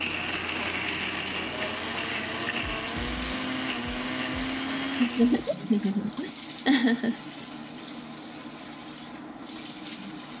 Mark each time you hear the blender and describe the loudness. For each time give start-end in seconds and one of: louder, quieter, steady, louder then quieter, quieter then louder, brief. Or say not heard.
0.0-5.5 steady.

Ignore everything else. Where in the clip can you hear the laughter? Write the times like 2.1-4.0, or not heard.
5.0-7.2.